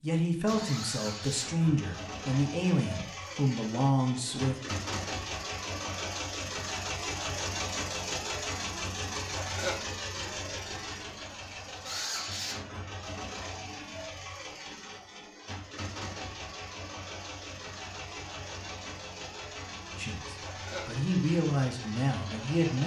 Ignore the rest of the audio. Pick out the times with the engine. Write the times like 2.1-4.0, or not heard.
0.5-22.8.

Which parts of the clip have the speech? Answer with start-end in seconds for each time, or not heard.
0.0-4.5, 19.9-22.8.